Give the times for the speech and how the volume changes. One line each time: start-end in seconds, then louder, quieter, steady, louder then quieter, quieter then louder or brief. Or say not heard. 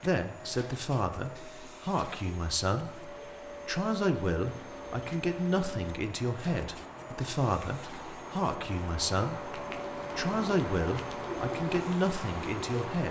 0.0-13.0 steady.